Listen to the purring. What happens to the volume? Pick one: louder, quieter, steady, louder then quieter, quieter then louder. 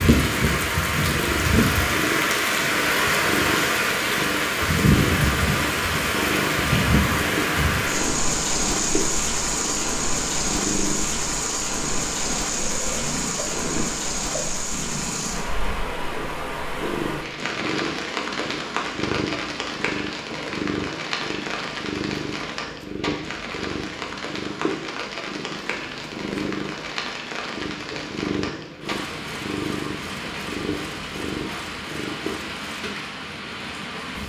steady.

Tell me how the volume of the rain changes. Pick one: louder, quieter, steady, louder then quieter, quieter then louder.
quieter.